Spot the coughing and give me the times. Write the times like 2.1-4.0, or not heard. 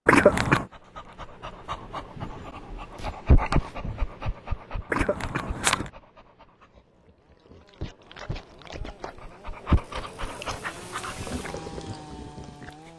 0.1-0.7, 4.9-5.9, 10.2-11.4.